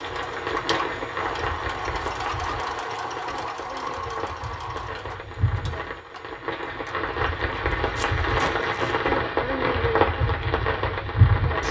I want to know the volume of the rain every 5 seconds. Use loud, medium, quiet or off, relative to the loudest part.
medium, loud, loud.